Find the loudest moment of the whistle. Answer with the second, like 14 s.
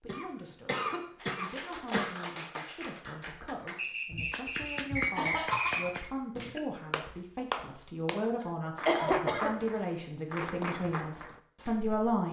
5 s.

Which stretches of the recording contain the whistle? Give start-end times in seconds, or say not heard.
3.8-6.1.